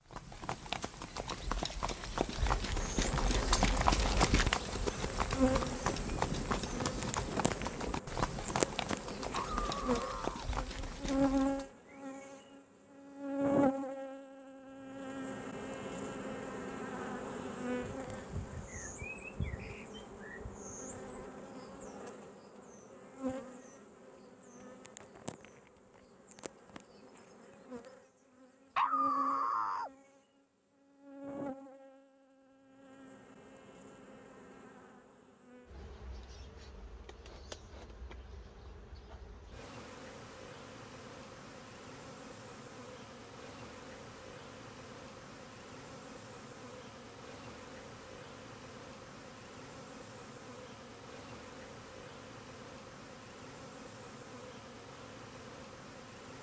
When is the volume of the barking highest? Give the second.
29 s.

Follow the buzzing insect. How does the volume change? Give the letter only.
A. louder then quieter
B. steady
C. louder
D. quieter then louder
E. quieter
E.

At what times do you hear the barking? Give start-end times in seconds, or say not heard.
9.3-10.5, 28.8-29.9.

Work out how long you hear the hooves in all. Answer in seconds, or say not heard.
12 s.